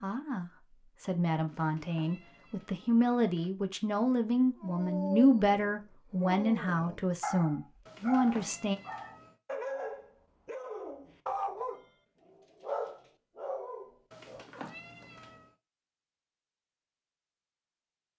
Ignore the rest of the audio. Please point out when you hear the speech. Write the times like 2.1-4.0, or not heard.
0.0-8.8.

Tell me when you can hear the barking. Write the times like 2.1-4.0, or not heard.
4.5-14.4.